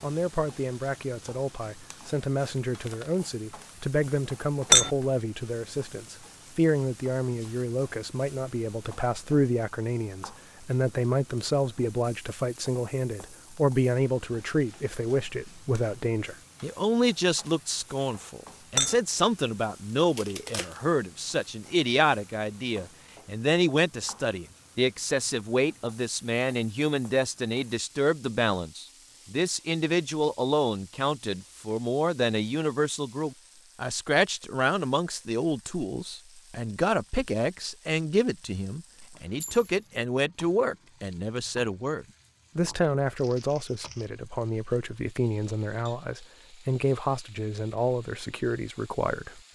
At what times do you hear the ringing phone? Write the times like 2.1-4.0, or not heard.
not heard.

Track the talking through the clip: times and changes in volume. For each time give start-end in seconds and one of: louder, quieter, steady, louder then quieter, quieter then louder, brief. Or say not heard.
0.0-49.5 steady.